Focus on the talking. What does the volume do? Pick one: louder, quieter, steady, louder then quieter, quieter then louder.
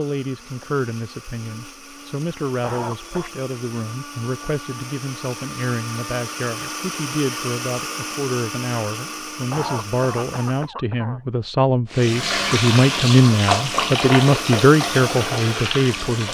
louder.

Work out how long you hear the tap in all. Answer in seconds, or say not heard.
4 s.